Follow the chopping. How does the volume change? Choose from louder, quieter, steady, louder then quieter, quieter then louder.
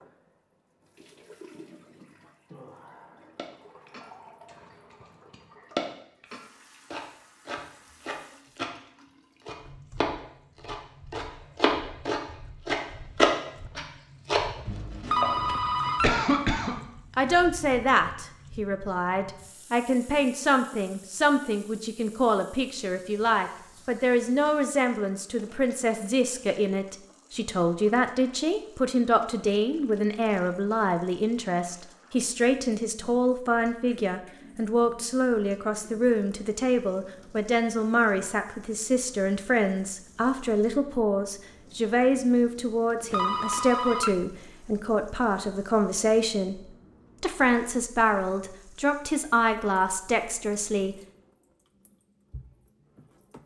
louder then quieter.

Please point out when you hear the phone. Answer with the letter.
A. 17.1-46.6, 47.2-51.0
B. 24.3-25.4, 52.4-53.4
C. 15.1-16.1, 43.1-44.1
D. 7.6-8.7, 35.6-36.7
C.